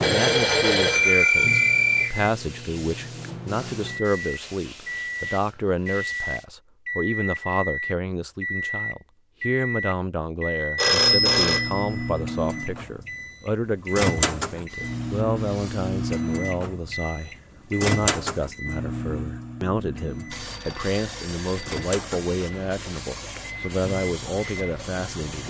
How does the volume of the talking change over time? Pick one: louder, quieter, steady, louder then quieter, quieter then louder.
steady.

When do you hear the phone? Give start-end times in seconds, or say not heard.
0.0-2.1, 10.8-12.1, 20.2-21.9.